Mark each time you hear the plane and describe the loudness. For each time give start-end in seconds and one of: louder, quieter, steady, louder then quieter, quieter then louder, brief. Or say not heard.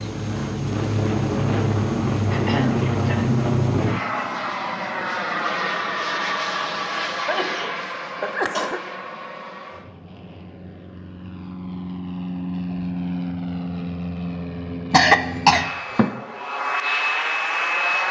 0.0-18.0 quieter then louder.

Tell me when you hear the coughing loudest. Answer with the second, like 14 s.
15 s.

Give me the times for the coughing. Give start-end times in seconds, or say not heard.
2.3-3.4, 7.1-8.8, 14.9-16.1.